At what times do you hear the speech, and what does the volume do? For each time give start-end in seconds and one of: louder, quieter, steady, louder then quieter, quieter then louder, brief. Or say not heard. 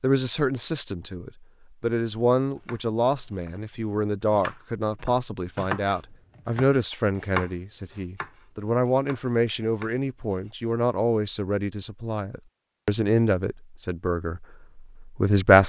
0.0-15.6 steady.